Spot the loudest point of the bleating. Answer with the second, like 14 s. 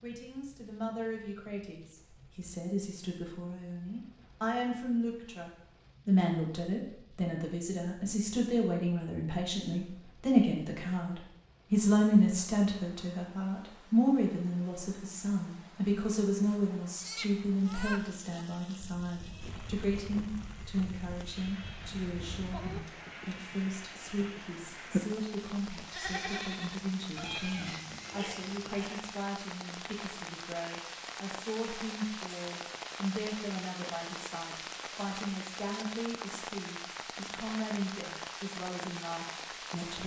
25 s.